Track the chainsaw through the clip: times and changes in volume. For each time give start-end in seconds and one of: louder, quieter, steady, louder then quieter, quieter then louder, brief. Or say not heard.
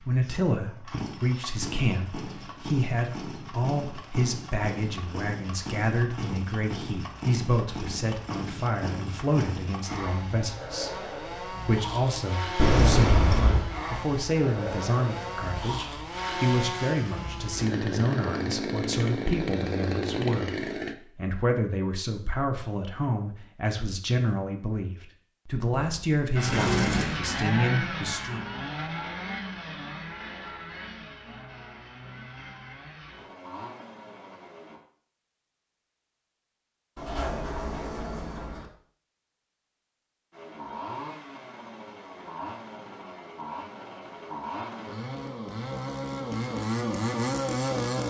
0.0-20.9 louder
26.4-34.8 quieter
40.3-48.0 louder.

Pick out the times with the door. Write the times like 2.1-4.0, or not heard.
12.6-13.7, 25.8-27.2, 37.0-38.6.